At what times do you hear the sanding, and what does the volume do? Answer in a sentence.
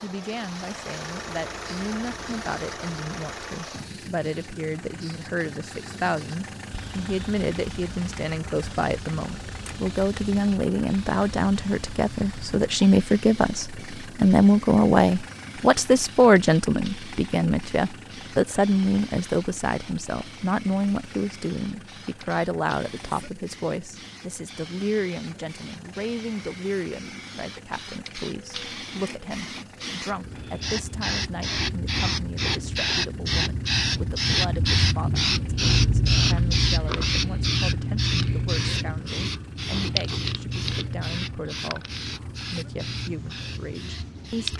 You can't hear the sanding here.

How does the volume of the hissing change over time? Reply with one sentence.
The volume of the hissing goes up.